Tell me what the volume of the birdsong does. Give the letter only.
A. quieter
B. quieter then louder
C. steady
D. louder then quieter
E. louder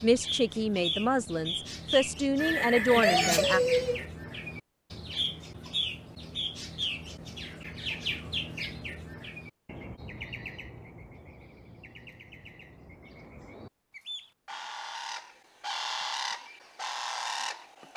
B.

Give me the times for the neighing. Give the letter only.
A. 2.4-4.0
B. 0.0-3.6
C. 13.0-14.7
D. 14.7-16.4
A.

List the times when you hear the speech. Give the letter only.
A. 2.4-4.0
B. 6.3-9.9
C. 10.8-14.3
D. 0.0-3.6
D.